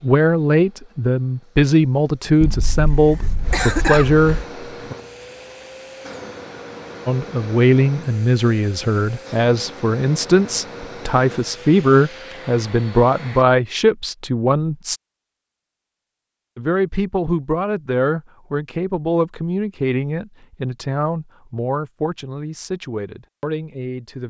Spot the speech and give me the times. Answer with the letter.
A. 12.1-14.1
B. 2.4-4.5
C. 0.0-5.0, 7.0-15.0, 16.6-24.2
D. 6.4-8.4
C.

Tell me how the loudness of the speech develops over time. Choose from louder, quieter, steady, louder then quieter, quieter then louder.
quieter.